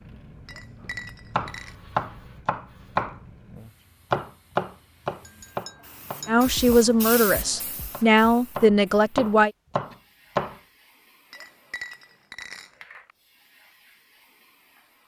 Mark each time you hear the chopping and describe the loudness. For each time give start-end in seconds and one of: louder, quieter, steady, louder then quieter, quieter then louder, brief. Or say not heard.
0.8-10.6 quieter then louder.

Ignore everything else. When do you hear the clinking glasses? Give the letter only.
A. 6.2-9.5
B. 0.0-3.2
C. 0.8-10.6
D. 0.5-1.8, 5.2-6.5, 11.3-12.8
D.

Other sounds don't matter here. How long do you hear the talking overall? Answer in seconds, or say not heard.
3 s.